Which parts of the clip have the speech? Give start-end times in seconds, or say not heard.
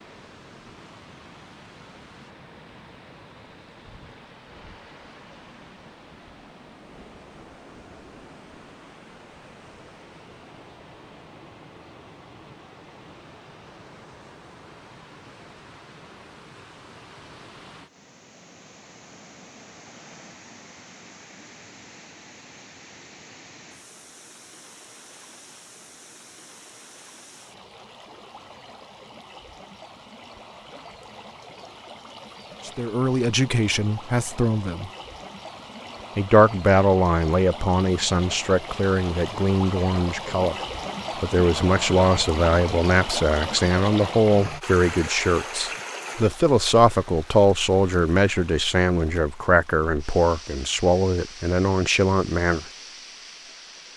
32.6-34.9, 36.1-40.5, 41.2-52.6.